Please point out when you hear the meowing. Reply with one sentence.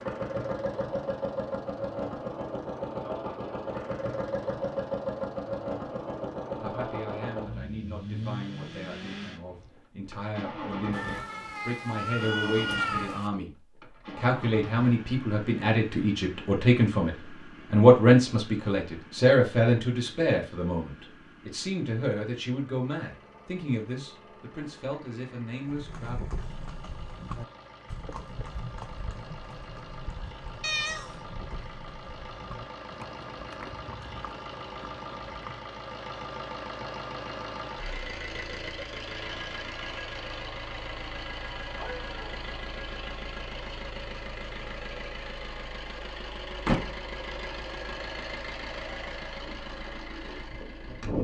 You can hear the meowing from 10.9 to 13.3 s, from 30.6 to 31.1 s and from 41.8 to 42.4 s.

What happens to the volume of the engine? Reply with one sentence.
The loudness of the engine goes down, then up.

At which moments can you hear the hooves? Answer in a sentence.
You can hear the hooves from 25.6 to 35.6 s.